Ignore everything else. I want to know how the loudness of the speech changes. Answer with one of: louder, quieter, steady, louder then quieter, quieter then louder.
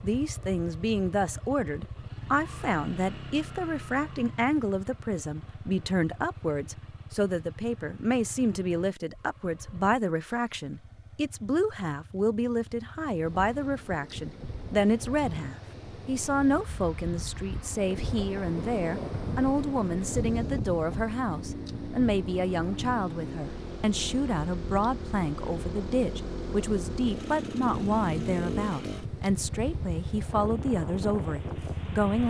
steady.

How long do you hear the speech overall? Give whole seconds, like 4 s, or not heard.
32 s.